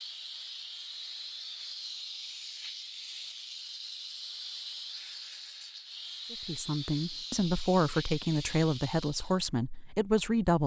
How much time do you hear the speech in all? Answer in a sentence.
You can hear the speech for 4 seconds altogether.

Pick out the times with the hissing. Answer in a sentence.
You can hear the hissing from 0.0 to 9.4 s.